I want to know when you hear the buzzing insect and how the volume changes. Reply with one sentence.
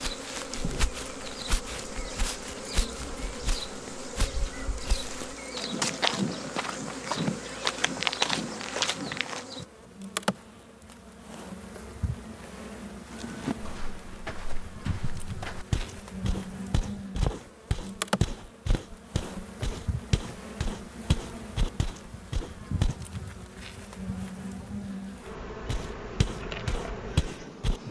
You can hear the buzzing insect from 0.0 to 27.8 s, at a steady volume.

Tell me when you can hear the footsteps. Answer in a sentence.
You can hear the footsteps from 0.0 to 9.4 s, from 13.1 to 22.9 s and from 25.6 to 27.8 s.